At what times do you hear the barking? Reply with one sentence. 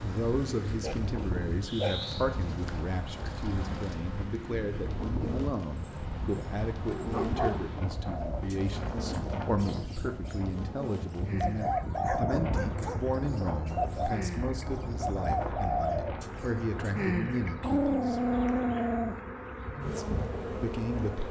You can hear the barking from 0.8 to 2.9 s, from 5.8 to 7.7 s, from 11.2 to 13.1 s and from 17.6 to 19.1 s.